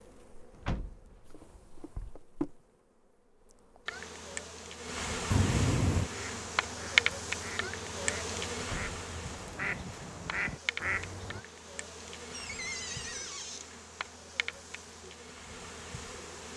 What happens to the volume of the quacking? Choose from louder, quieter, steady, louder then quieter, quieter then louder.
louder.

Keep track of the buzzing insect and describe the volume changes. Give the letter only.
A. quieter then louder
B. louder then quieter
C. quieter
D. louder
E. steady
B.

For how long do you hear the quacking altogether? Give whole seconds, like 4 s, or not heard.
5 s.